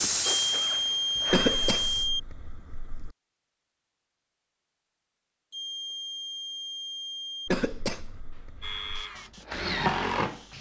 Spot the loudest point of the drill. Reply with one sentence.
The volume of the drill peaks at 10 seconds.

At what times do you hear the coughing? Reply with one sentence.
You can hear the coughing from 1.3 to 3.1 s and from 7.5 to 9.1 s.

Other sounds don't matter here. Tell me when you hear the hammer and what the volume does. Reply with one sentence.
The hammer can't be heard in this clip.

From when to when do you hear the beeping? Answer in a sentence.
You can hear the beeping from 0.5 to 2.2 s and from 5.5 to 7.5 s.